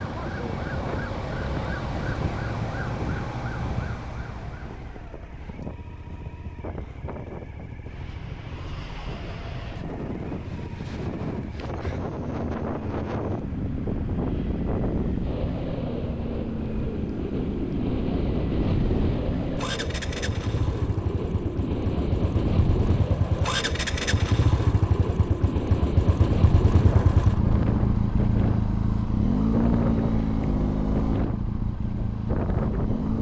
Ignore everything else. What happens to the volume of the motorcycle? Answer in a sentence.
The volume of the motorcycle goes up.